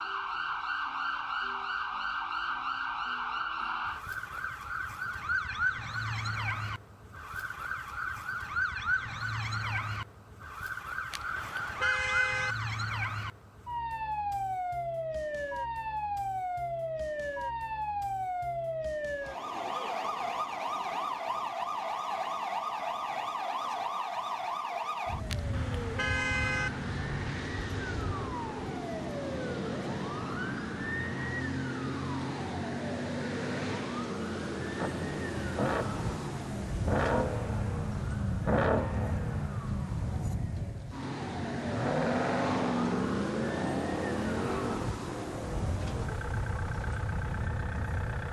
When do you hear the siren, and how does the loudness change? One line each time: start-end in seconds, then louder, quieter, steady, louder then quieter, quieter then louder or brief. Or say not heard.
0.0-48.2 steady.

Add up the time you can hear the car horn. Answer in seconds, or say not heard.
3 s.